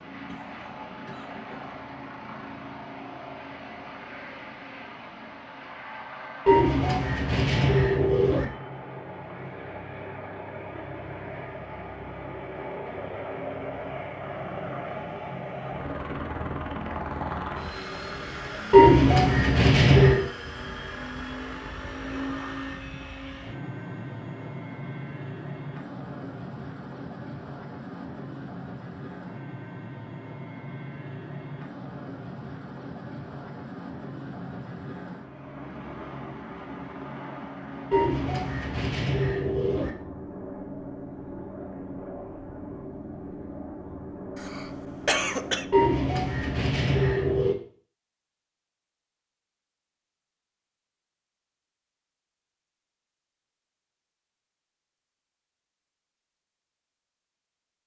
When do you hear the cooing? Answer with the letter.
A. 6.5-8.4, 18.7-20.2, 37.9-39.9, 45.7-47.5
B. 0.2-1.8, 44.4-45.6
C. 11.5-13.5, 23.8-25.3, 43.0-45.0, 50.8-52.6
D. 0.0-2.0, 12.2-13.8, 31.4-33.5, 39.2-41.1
A.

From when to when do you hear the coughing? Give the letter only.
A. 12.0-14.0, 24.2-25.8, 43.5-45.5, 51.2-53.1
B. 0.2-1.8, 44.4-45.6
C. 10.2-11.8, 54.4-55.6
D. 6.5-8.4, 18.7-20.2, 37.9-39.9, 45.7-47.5
B.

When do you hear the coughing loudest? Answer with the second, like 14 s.
45 s.